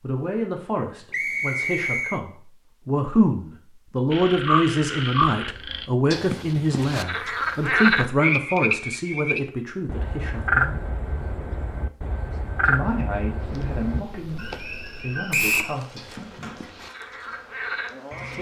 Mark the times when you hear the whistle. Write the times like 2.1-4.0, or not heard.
1.1-2.2, 15.3-15.8.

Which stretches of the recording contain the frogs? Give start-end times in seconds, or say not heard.
4.1-18.3.